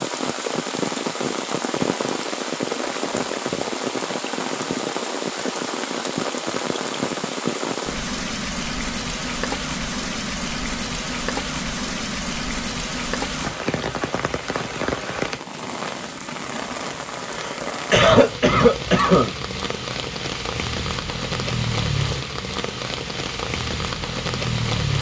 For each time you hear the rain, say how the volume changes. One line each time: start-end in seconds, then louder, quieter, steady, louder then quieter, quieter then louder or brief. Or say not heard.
0.0-24.9 steady.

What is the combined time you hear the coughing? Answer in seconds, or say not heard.
2 s.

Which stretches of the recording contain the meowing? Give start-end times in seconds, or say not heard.
not heard.